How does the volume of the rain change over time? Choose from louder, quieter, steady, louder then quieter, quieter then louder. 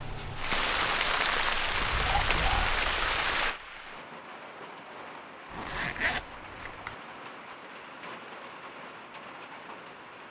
quieter.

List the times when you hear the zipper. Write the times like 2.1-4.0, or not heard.
5.5-7.0.